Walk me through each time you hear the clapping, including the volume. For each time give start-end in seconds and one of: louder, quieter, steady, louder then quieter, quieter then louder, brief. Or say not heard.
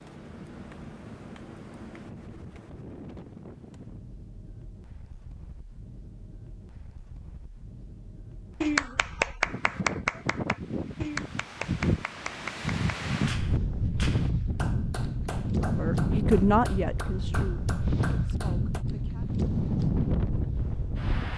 8.6-18.9 quieter.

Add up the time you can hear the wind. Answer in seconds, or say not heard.
21 s.